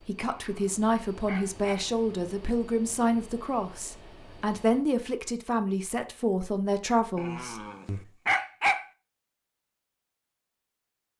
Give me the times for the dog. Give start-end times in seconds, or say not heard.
0.4-1.9, 7.2-8.8.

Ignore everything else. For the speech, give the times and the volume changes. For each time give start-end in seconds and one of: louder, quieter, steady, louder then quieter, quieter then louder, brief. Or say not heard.
0.1-8.0 steady.